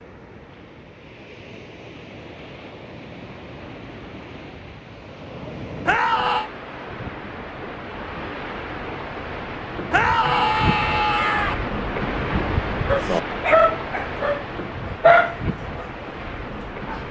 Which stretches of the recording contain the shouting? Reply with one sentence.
You can hear the shouting from 5.8 to 6.5 s and from 9.9 to 11.6 s.